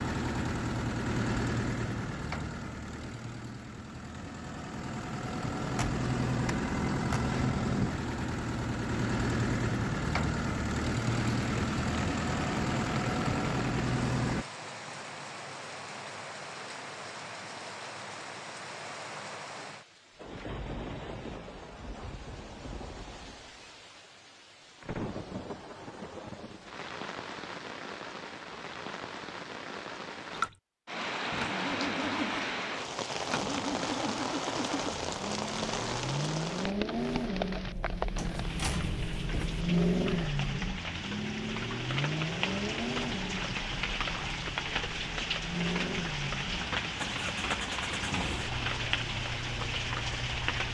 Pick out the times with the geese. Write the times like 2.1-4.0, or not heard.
not heard.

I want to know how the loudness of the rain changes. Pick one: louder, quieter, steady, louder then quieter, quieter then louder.
louder.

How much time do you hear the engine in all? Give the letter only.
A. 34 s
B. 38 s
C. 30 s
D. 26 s
A.